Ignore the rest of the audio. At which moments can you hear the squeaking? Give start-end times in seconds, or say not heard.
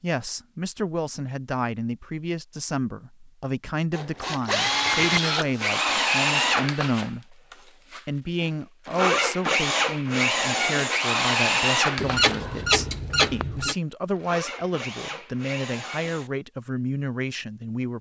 11.9-13.8.